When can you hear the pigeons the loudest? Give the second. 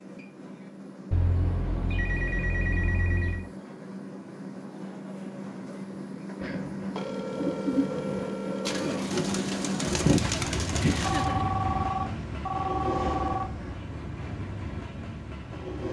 10 s.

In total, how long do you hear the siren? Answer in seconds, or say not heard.
not heard.